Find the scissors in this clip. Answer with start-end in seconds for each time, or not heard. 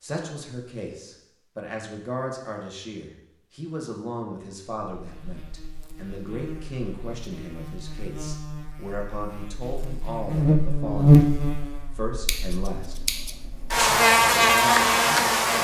12.2-13.8.